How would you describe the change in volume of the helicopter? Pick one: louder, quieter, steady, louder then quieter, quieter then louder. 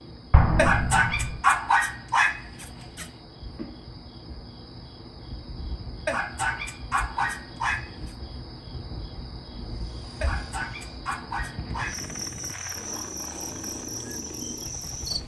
louder.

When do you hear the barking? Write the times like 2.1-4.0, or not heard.
0.6-3.0, 6.0-8.1, 10.2-12.1.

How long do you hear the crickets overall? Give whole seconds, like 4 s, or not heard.
15 s.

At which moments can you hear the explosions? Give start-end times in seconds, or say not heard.
0.3-1.4.